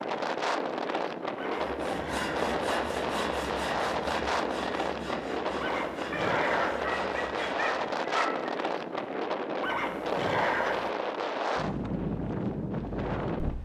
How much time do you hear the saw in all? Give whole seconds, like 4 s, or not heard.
6 s.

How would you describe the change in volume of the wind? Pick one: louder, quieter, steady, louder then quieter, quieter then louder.
steady.